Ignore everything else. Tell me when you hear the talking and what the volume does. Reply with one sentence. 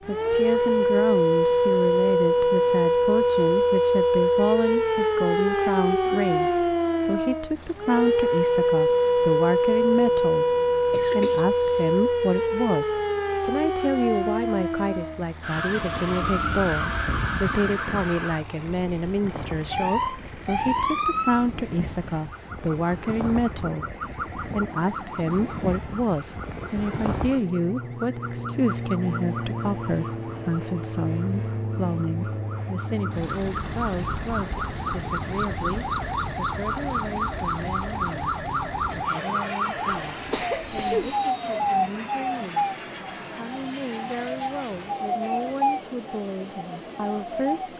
The talking can be heard from 0.1 to 47.7 s, getting quieter.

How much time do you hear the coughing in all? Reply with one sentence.
You can hear the coughing for 2 seconds altogether.